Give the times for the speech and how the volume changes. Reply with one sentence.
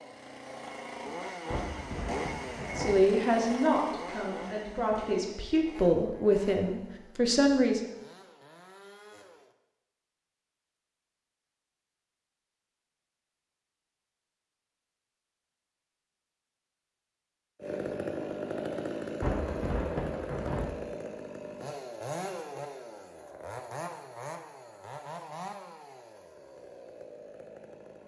You can hear the speech from 2.8 to 7.8 s, getting quieter then louder.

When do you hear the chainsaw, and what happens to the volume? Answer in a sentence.
You can hear the chainsaw from 0.0 to 9.6 s, getting quieter; and from 17.6 to 28.0 s, getting quieter.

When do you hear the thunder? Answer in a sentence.
You can hear the thunder from 1.5 to 3.0 s and from 19.2 to 20.7 s.